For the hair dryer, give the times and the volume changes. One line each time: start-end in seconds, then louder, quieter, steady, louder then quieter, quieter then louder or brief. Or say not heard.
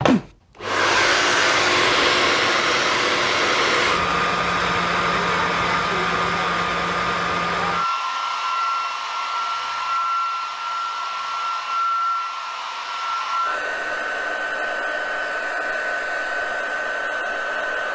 0.0-17.9 quieter.